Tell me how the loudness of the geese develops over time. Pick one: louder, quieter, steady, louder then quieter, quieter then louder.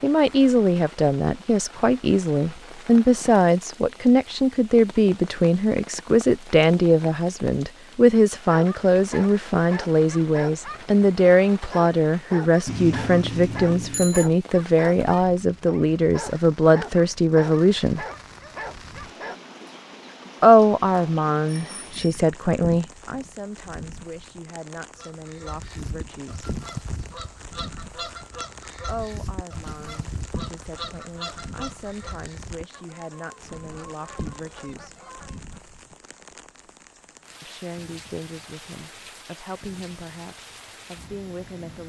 quieter.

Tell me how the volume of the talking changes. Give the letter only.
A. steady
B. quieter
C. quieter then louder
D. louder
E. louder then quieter
B.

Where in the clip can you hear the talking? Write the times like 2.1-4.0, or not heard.
0.0-18.1, 20.4-26.4, 28.9-34.9, 37.4-41.8.